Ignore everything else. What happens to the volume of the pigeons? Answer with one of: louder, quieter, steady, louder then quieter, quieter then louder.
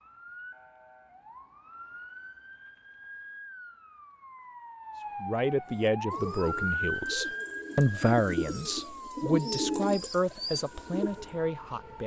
louder then quieter.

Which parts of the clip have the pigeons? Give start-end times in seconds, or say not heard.
5.7-11.3.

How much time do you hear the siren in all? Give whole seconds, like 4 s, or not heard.
12 s.